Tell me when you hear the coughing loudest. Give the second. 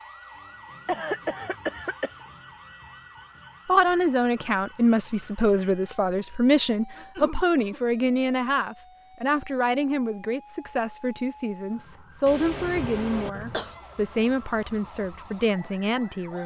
1 s.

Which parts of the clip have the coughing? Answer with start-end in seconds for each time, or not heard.
0.8-2.1, 7.0-7.8, 12.2-13.8.